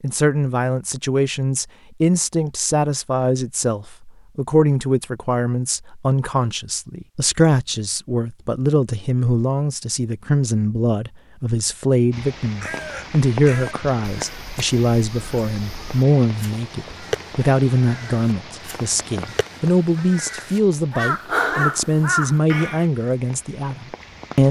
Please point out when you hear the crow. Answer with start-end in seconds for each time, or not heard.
12.4-22.9.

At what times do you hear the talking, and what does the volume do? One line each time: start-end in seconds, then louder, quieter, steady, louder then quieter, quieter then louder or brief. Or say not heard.
0.0-24.4 steady.